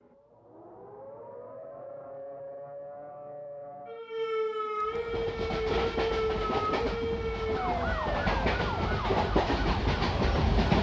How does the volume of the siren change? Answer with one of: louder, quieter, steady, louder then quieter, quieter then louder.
louder.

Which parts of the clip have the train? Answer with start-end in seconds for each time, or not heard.
4.8-10.7.